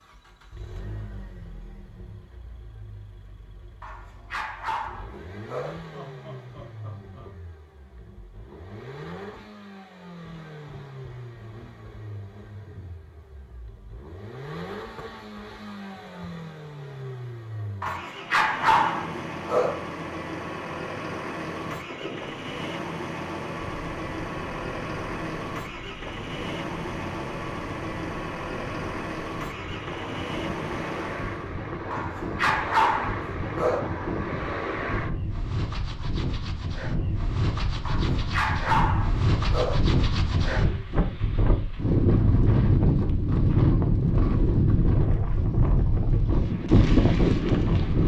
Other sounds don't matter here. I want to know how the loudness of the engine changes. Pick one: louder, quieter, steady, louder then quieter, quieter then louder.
louder.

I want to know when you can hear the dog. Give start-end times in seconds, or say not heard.
3.8-5.8, 17.8-19.8, 31.9-33.8, 37.9-39.8.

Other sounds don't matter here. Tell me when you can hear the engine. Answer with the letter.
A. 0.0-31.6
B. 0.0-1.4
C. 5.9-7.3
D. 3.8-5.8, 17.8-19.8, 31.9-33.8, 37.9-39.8
A.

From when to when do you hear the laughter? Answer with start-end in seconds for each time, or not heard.
5.9-7.3.